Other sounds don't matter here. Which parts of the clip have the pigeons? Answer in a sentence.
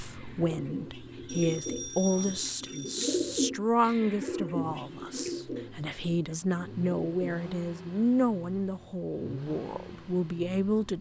You can hear the pigeons from 0.0 to 7.5 s.